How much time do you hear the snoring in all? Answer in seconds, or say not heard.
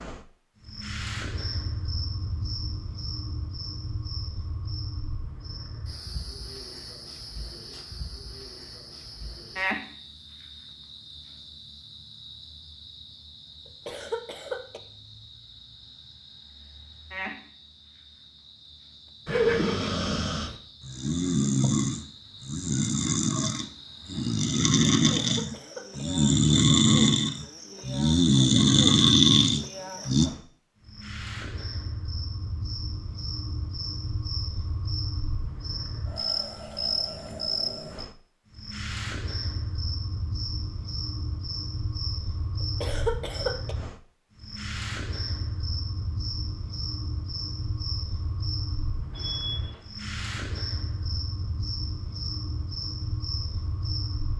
11 s.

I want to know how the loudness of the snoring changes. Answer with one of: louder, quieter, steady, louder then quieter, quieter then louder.
louder.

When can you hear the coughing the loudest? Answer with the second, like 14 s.
43 s.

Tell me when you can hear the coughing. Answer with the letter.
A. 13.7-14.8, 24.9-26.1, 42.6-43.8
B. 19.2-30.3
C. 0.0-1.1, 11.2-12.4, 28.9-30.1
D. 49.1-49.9
A.